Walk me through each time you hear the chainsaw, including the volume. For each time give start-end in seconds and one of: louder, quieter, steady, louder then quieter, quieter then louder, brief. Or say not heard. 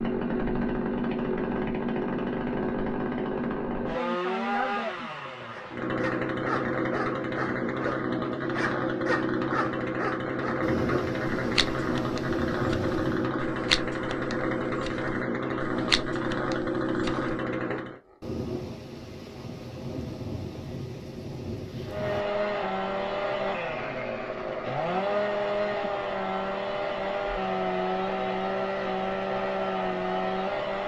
0.0-18.0 steady
21.9-30.8 steady.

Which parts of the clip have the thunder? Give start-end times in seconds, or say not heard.
10.6-13.3, 18.2-22.2.